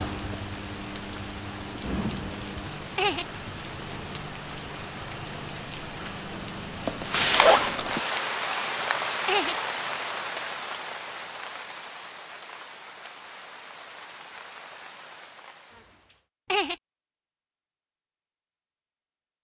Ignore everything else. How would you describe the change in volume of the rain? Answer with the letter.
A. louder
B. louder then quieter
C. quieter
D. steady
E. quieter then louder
B.